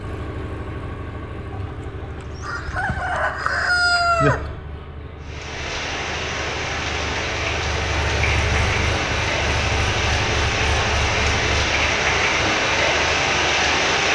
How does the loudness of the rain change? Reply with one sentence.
The loudness of the rain goes up.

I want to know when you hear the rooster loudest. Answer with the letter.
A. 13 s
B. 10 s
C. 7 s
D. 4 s
D.